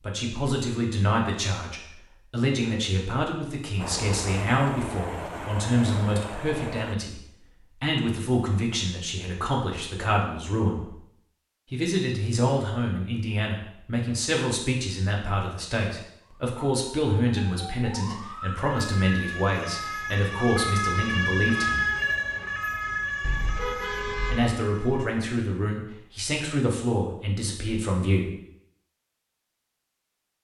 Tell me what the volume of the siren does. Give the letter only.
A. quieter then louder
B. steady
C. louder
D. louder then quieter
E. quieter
D.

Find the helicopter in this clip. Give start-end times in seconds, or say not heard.
3.8-7.0.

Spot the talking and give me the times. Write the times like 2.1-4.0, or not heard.
0.0-10.9, 11.7-21.9, 24.2-28.3.